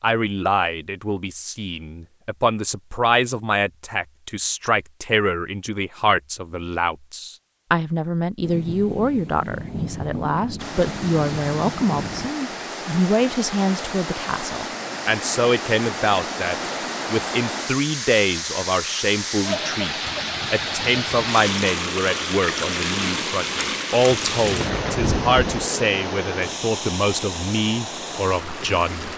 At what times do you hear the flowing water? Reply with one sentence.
You can hear the flowing water from 10.6 to 29.1 s.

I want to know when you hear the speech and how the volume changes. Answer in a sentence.
You can hear the speech from 0.0 to 29.1 s, at a steady volume.